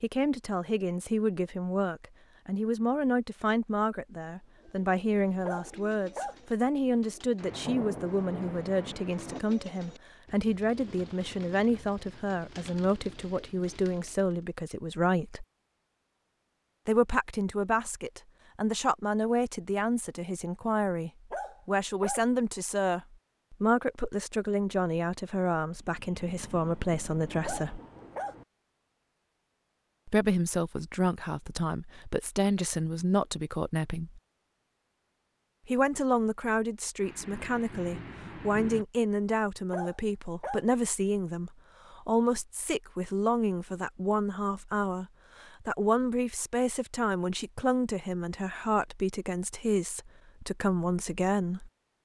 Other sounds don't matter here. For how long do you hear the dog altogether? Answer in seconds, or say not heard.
4 s.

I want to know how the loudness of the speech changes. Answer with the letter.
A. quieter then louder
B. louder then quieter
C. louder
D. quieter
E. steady
E.